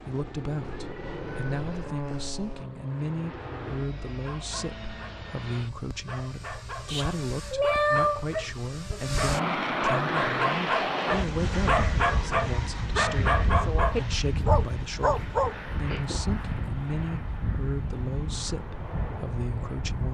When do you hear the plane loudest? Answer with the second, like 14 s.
10 s.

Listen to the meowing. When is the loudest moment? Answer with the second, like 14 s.
8 s.